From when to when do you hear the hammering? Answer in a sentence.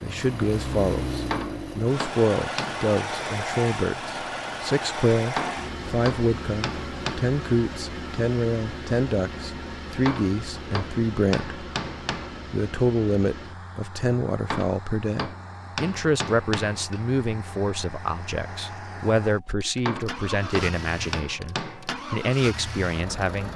You can hear the hammering from 1.3 to 2.9 s, from 5.3 to 7.2 s, from 10.1 to 12.3 s, from 14.5 to 17.0 s and from 19.9 to 21.9 s.